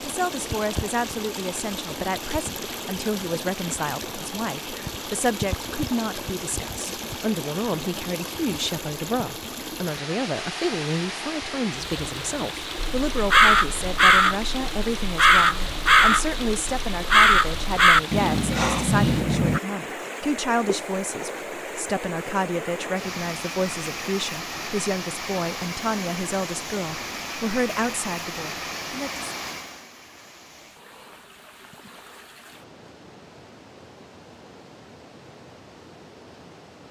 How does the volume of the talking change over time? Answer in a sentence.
The loudness of the talking stays about the same.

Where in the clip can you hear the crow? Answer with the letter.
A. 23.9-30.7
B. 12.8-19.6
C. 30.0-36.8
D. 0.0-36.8
B.